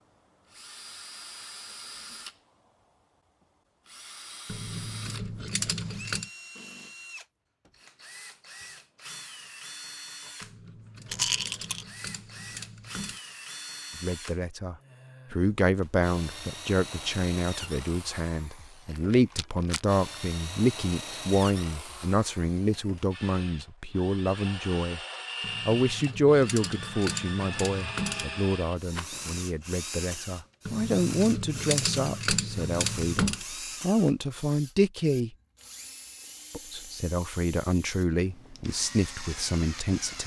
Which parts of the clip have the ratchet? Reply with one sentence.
You can hear the ratchet from 4.5 to 6.3 s, from 10.4 to 13.2 s, from 25.4 to 28.4 s and from 30.6 to 33.5 s.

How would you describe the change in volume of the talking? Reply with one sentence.
The volume of the talking stays about the same.